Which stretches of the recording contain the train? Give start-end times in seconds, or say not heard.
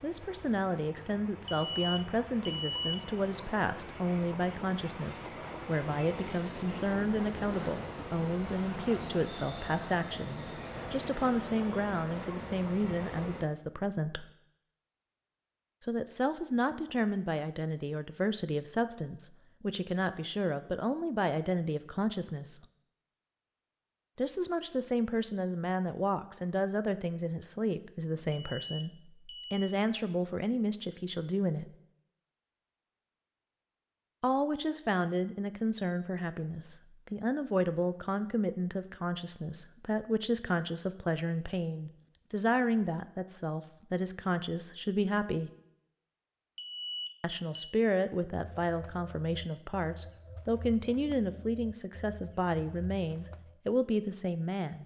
0.0-13.5.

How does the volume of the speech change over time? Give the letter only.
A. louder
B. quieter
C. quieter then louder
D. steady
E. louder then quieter
D.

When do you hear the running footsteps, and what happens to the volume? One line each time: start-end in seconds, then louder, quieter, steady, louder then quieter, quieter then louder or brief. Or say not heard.
not heard.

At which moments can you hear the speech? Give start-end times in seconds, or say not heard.
0.0-14.2, 15.8-22.6, 24.1-31.7, 34.2-45.5, 47.2-54.8.